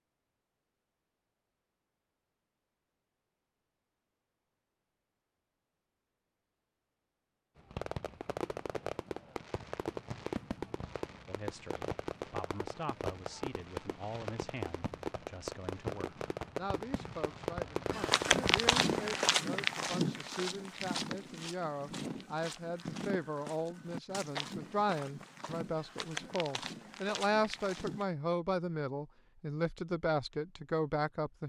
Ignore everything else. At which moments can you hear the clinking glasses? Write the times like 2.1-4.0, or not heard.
not heard.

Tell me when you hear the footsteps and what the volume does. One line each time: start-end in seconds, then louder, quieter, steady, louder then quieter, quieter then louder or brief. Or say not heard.
17.9-28.1 quieter.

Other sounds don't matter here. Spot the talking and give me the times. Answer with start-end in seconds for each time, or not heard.
11.2-31.4.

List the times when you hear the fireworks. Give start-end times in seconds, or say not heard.
7.5-19.1.